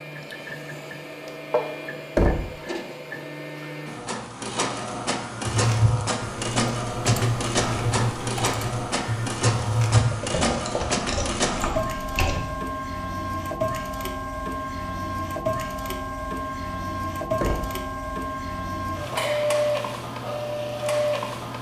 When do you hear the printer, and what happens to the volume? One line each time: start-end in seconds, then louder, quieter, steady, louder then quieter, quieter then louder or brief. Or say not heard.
0.0-21.5 louder.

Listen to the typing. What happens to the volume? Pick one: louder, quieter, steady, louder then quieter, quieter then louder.
louder then quieter.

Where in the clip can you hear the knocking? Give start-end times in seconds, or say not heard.
2.1-2.6, 17.4-17.8.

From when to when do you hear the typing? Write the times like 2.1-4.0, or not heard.
5.5-12.4.